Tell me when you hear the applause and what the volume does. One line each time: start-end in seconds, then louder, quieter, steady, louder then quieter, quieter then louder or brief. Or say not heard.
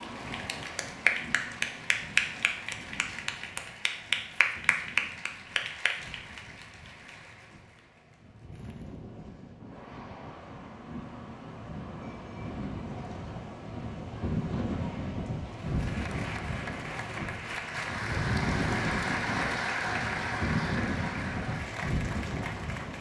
0.0-9.1 quieter
15.4-22.9 louder then quieter.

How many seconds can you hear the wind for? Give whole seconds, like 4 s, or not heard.
23 s.